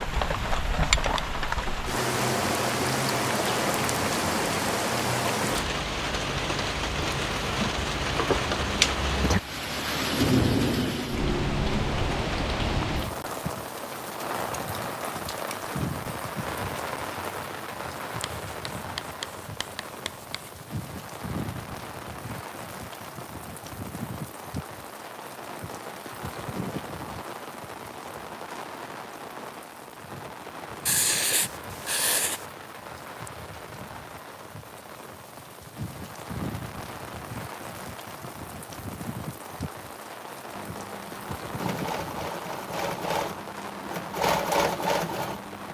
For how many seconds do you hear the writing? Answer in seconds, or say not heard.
4 s.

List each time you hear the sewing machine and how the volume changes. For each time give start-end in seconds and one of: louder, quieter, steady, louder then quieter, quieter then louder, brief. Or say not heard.
40.5-45.6 louder.